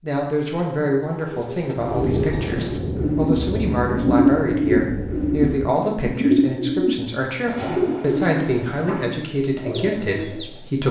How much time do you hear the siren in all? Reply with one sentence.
You can't hear the siren here.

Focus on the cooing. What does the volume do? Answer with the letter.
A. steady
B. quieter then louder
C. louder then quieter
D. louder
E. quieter
C.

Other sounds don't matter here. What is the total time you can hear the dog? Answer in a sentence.
The dog can't be heard in this clip.